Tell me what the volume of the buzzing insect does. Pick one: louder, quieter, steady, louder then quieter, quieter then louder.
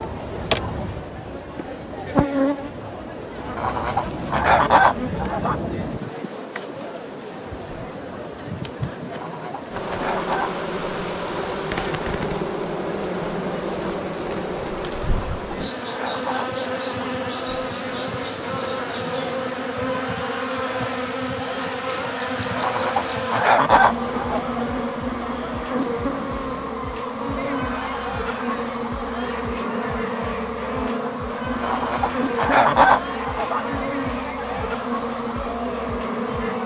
steady.